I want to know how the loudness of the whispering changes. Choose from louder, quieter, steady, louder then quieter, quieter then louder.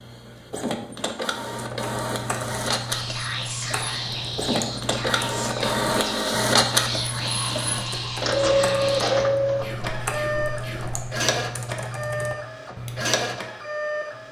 quieter.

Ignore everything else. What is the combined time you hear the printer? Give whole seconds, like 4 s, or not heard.
14 s.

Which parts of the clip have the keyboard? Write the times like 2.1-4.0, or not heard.
1.3-13.5.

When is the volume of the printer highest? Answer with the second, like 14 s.
9 s.